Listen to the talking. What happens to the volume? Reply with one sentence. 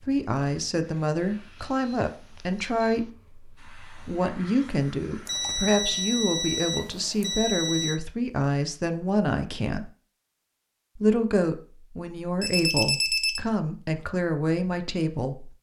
The loudness of the talking stays about the same.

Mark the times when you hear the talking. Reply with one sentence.
The talking can be heard from 0.1 to 9.9 s and from 10.9 to 15.5 s.